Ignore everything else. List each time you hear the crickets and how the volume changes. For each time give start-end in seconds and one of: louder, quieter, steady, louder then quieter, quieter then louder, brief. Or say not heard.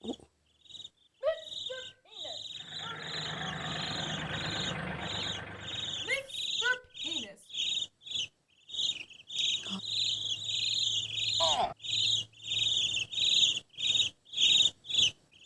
0.0-15.2 louder.